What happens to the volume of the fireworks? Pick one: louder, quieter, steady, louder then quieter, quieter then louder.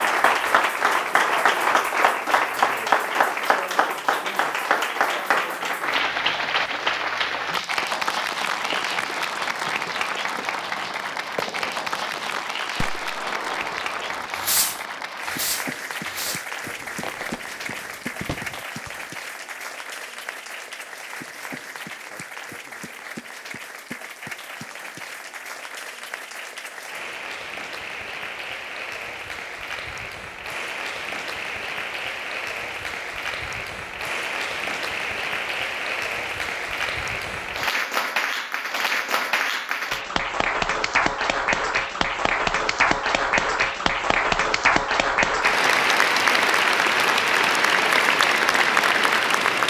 louder then quieter.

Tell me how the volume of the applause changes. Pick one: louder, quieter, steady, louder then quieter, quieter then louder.
quieter then louder.